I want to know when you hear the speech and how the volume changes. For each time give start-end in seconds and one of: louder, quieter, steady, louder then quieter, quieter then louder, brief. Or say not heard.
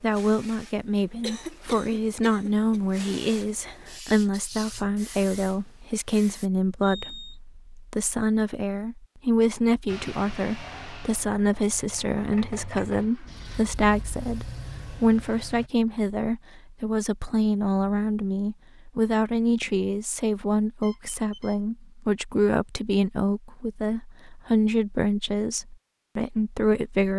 0.0-27.1 steady.